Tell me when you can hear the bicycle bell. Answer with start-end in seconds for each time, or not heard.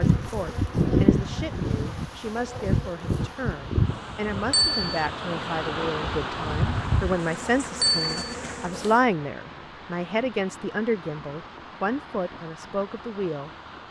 4.5-5.0, 7.8-8.3.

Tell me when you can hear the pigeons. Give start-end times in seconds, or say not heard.
not heard.